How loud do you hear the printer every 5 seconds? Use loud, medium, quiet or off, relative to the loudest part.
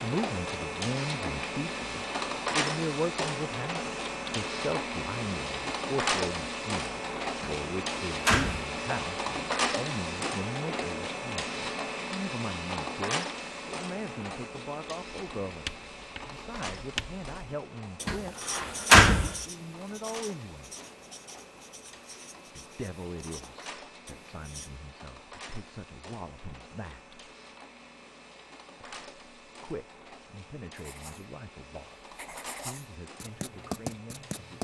loud, loud, loud, quiet, quiet, quiet, quiet.